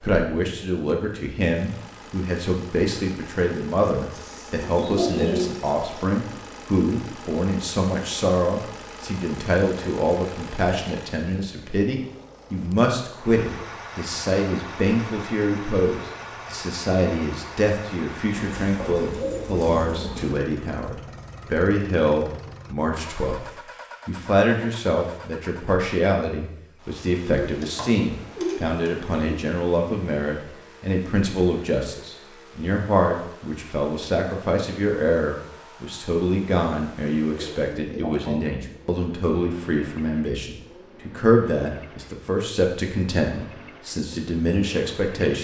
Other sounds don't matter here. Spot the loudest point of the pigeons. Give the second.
5 s.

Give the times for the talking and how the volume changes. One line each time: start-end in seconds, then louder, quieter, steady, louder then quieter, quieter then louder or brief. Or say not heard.
0.0-23.4 steady
24.1-45.3 steady.